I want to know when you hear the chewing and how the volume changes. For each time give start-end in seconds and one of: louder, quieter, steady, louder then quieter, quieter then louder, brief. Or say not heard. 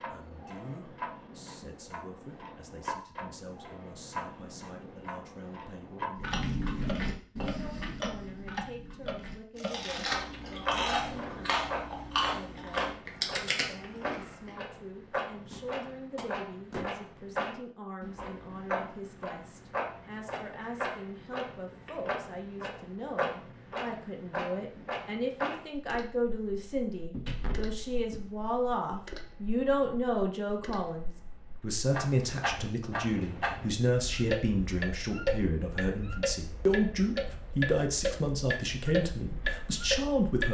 6.2-14.6 quieter then louder.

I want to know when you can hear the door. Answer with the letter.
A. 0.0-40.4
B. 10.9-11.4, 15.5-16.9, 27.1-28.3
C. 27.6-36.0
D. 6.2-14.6
B.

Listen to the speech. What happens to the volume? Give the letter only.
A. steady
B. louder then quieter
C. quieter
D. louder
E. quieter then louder
D.